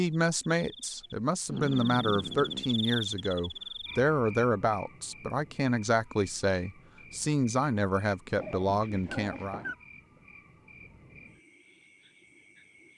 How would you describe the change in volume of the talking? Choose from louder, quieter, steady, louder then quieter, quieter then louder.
steady.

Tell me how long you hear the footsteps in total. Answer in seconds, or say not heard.
not heard.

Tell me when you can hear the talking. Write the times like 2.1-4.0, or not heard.
0.0-9.6.